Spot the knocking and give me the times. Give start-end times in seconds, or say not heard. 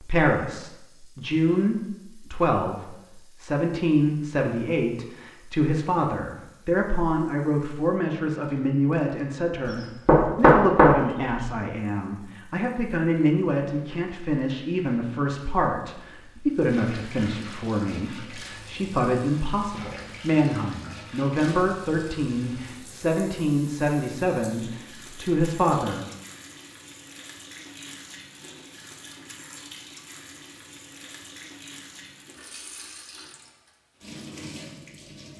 9.7-11.5.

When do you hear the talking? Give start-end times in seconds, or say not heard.
0.0-26.1.